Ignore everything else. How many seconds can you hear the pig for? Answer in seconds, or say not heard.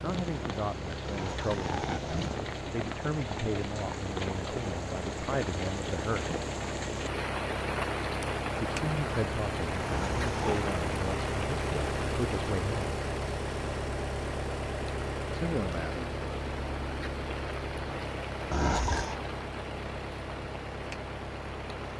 not heard.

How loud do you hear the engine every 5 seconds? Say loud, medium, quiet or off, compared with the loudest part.
medium, loud, loud, loud, medium.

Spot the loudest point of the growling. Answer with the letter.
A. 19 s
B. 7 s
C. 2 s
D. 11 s
A.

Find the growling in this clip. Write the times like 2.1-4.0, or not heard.
1.1-2.4, 9.8-10.7, 18.5-19.2.